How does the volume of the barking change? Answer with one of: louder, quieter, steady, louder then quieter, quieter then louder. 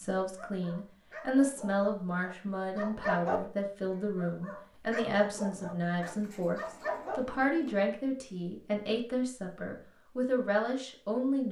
louder then quieter.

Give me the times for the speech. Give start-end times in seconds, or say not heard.
0.0-11.4.